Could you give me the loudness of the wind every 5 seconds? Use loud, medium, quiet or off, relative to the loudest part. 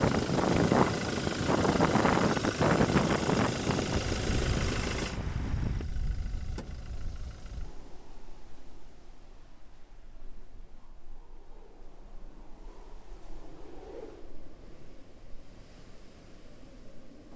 loud, quiet, quiet, quiet.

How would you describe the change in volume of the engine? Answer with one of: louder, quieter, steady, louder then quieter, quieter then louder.
quieter.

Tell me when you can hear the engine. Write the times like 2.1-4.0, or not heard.
0.0-7.8.